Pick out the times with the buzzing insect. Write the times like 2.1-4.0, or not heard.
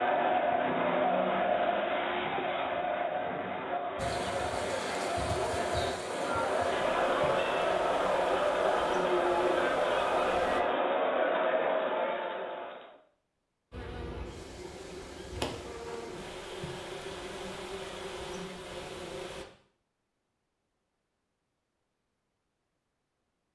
4.0-10.6, 13.7-19.4.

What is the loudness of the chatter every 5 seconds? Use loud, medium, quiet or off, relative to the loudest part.
loud, loud, loud, off, off.